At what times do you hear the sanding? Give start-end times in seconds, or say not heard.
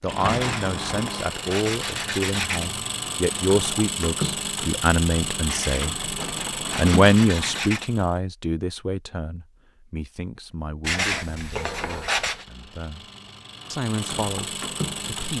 0.2-2.7, 5.5-7.9, 10.8-12.4.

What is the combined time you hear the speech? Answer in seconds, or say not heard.
14 s.